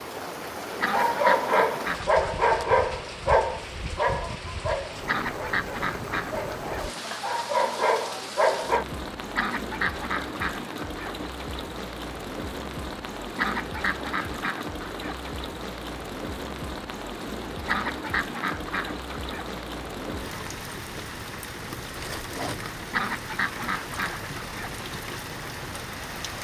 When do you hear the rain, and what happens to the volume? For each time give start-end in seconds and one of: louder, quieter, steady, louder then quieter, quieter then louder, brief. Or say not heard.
0.0-26.4 steady.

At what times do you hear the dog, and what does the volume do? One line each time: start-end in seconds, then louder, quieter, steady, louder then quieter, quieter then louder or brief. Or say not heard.
0.9-8.8 quieter then louder.